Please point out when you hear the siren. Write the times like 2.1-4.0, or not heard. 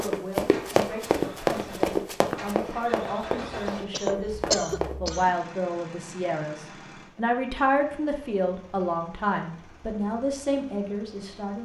not heard.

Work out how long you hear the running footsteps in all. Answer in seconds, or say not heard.
5 s.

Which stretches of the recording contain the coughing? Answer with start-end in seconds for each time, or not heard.
3.9-5.3.